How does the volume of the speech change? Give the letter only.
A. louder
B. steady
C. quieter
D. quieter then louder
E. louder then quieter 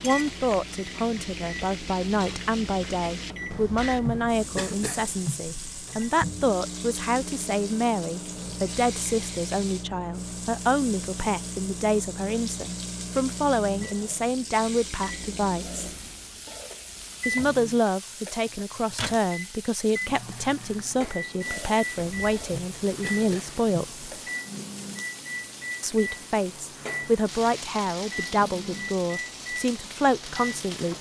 B.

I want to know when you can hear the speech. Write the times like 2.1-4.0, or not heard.
0.0-15.8, 17.2-23.9, 25.8-30.9.